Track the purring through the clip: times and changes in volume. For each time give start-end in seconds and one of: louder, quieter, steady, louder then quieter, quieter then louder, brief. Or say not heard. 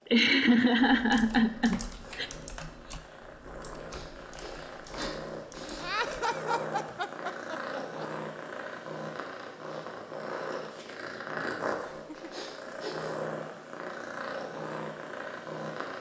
0.0-15.9 louder.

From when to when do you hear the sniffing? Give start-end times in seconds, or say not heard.
3.9-5.9, 12.3-13.2.